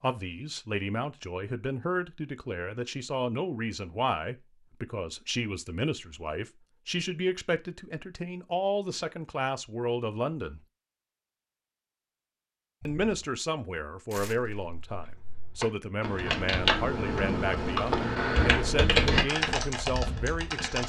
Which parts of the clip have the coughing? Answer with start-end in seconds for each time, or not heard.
not heard.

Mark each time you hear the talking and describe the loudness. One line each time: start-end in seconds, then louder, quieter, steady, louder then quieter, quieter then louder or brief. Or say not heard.
0.0-10.6 steady
12.8-20.8 steady.